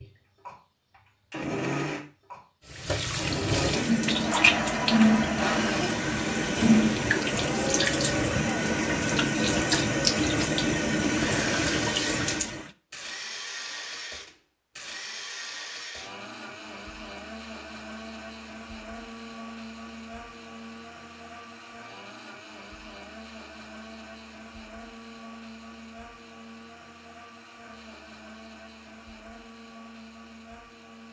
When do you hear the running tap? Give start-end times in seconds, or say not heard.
2.6-12.7.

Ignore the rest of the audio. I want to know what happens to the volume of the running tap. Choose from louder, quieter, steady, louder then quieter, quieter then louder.
steady.